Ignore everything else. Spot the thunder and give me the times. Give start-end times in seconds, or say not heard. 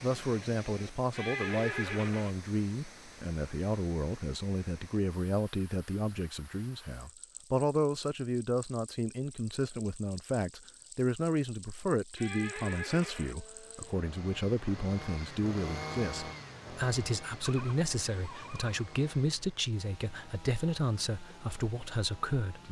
not heard.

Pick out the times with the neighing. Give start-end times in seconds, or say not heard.
1.1-2.4, 12.2-13.3, 17.4-18.8.